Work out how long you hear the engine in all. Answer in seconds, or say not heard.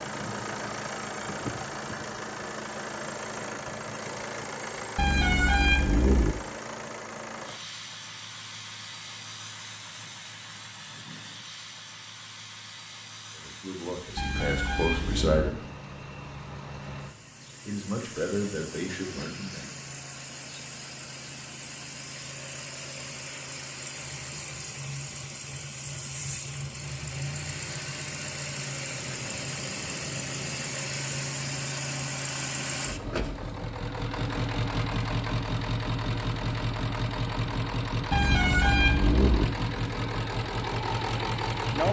42 s.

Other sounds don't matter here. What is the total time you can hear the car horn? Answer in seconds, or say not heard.
4 s.